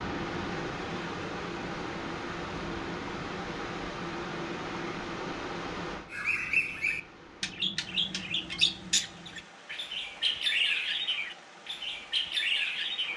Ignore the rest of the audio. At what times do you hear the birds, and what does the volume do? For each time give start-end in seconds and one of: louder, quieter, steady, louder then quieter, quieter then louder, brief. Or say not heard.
6.1-13.1 quieter then louder.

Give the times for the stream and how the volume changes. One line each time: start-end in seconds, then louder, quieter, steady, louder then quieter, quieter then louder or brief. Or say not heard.
0.0-13.1 quieter.